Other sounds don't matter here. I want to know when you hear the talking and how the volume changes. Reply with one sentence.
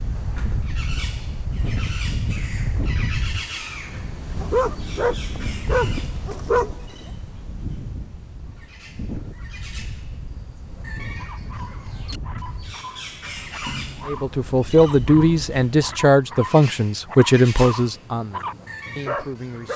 You can hear the talking from 14.1 to 19.7 s, getting quieter.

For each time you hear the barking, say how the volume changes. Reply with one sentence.
The barking can be heard briefly from 4.4 to 7.0 s; and from 11.2 to 19.7 s, getting louder.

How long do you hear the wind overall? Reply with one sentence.
You can hear the wind for 16 seconds altogether.